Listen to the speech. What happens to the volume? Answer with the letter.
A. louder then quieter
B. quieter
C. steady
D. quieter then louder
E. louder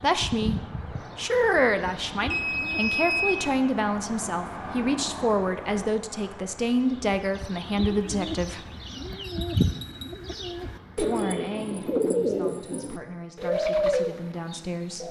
B.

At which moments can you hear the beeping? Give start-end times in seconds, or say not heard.
2.3-3.4, 9.2-10.2.